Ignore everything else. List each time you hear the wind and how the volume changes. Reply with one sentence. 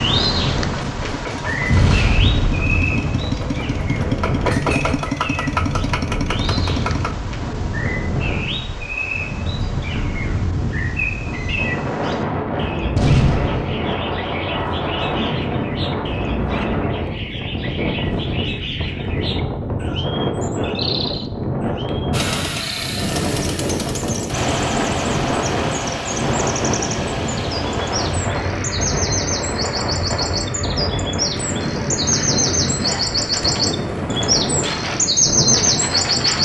The wind can be heard from 0.0 to 36.3 s, at a steady volume.